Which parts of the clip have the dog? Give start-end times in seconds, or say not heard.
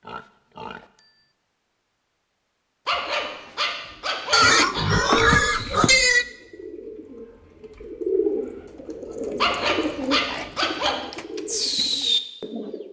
2.9-4.8, 9.4-10.9.